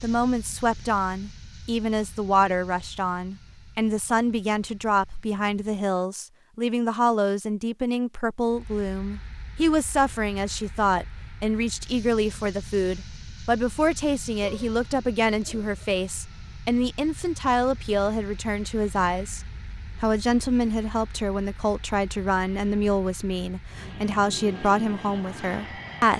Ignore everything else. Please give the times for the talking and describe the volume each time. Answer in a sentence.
You can hear the talking from 0.0 to 19.4 s, at a steady volume; and from 20.0 to 26.1 s, at a steady volume.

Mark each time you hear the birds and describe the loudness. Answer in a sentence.
You can't hear the birds here.